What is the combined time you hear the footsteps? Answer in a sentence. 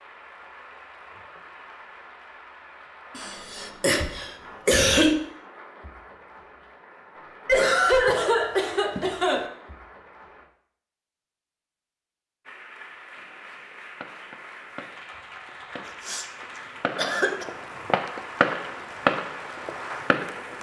You can't hear the footsteps here.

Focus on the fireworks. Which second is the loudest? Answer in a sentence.
The loudest moment of the fireworks is at 19 seconds.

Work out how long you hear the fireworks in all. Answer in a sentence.
You can hear the fireworks for 7 seconds altogether.